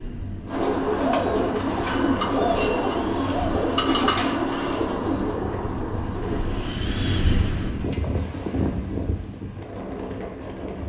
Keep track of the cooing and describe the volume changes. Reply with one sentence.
The volume of the cooing goes down.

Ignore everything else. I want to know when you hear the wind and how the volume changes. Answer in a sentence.
The wind can be heard from 0.0 to 10.8 s, getting louder.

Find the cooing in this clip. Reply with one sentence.
The cooing can be heard from 0.5 to 6.8 s.